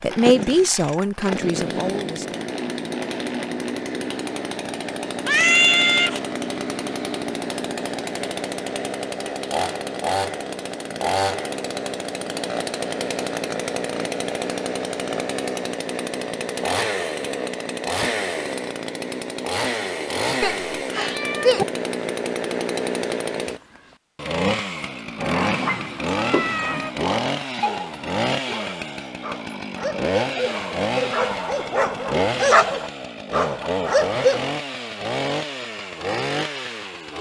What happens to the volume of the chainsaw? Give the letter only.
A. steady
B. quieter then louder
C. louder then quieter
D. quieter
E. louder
A.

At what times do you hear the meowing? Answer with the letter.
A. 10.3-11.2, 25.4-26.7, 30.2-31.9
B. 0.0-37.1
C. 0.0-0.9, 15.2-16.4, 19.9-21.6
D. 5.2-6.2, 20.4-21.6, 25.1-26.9
D.